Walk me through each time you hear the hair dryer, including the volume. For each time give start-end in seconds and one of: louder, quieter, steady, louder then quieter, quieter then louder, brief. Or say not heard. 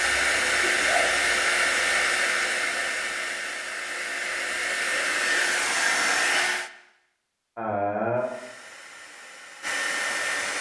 0.0-6.7 quieter then louder
8.2-10.5 brief.